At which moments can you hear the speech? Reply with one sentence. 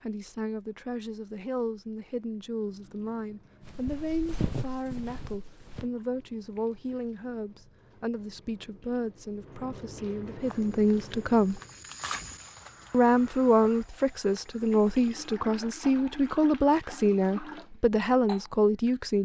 The speech can be heard from 0.0 to 11.6 s and from 12.9 to 19.2 s.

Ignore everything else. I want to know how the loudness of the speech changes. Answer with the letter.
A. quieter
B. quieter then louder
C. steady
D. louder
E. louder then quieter
D.